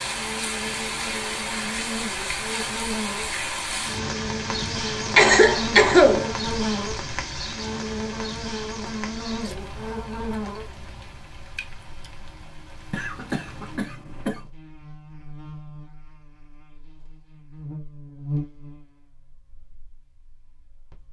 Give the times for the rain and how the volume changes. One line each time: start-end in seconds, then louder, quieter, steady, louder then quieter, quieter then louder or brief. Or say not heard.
0.0-13.8 quieter.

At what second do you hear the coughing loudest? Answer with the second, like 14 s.
6 s.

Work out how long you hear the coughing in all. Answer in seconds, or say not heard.
3 s.